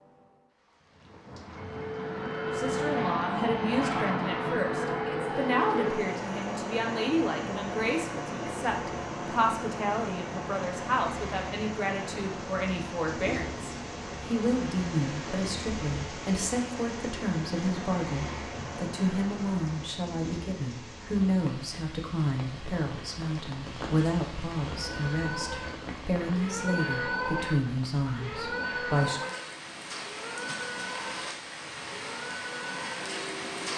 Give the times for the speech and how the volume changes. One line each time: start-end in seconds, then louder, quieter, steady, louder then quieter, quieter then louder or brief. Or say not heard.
2.5-29.3 steady.